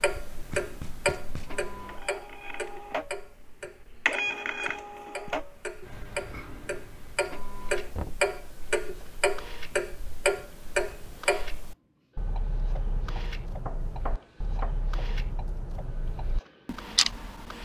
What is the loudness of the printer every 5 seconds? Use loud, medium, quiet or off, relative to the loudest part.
loud, medium, quiet, quiet.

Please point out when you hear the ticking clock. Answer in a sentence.
The ticking clock can be heard from 0.0 to 17.6 s.